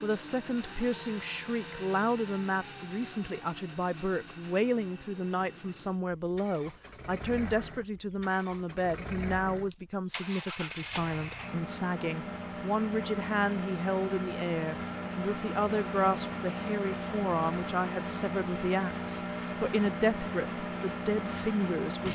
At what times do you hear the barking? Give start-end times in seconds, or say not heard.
not heard.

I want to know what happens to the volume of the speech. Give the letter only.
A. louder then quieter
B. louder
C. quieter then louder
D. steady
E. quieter
D.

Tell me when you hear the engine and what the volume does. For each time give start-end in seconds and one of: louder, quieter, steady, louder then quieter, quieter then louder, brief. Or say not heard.
0.0-22.0 louder.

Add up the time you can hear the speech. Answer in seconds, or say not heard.
22 s.